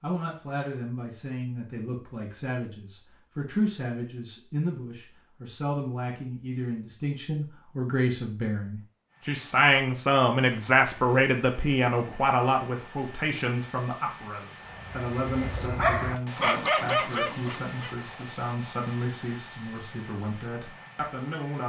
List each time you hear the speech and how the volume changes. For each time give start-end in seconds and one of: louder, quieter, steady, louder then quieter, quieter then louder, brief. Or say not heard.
0.0-21.6 louder then quieter.